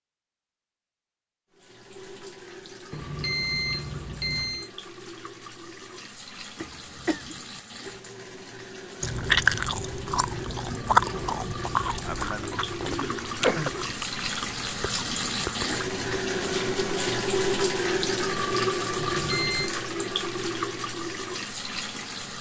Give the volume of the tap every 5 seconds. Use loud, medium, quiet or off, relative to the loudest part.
quiet, quiet, medium, loud, medium.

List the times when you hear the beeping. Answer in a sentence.
You can hear the beeping from 2.9 to 4.7 s and from 18.9 to 19.7 s.